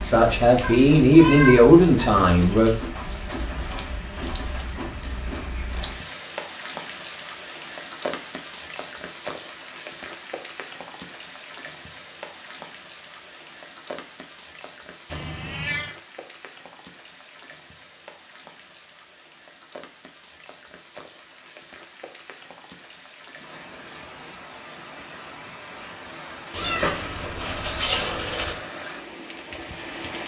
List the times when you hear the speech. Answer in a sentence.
You can hear the speech from 0.0 to 2.7 s.